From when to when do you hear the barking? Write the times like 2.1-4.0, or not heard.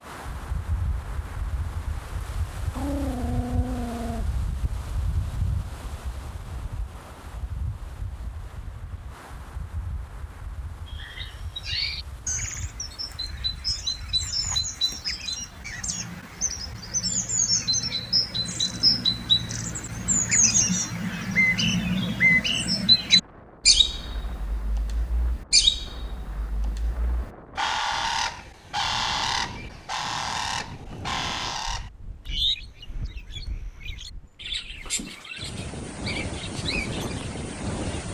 2.7-4.3.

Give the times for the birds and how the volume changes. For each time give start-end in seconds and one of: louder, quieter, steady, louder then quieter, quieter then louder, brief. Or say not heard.
10.8-38.0 louder then quieter.